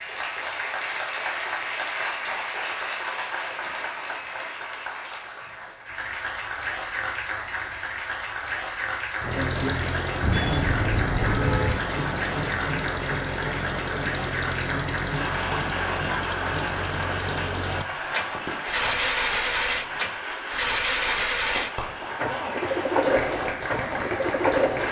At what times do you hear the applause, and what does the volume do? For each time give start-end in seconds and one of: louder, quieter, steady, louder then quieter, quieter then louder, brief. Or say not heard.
0.0-24.8 steady.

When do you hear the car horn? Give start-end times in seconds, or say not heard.
10.2-11.8.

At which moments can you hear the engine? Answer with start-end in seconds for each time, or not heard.
9.2-24.8.